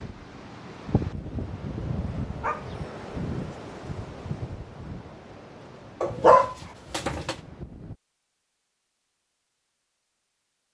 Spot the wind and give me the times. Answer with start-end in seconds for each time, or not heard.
0.0-8.0.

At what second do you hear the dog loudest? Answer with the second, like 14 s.
6 s.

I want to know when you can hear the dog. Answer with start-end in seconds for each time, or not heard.
0.8-2.9, 6.0-7.3.